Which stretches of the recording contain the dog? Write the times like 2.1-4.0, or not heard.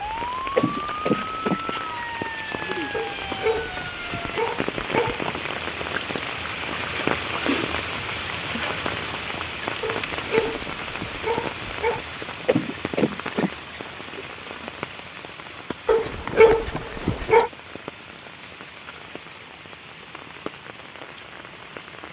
2.9-5.3, 9.8-12.0, 15.8-17.5.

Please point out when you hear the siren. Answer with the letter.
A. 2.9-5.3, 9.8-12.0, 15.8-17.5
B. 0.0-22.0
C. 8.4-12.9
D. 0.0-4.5
D.